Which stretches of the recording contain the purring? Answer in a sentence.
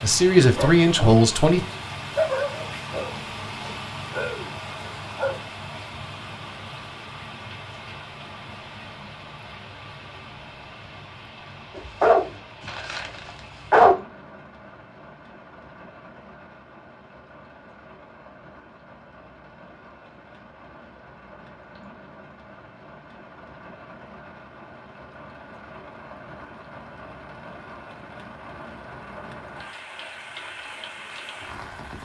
The purring can't be heard in this clip.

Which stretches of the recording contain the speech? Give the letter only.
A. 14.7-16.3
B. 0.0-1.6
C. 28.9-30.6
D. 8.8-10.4
B.